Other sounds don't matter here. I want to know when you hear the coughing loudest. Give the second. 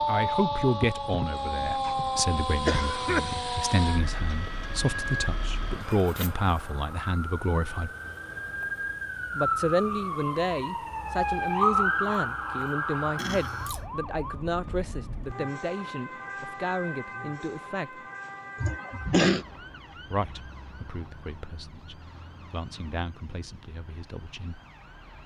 19 s.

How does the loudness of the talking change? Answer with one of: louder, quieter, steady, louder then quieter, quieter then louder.
quieter.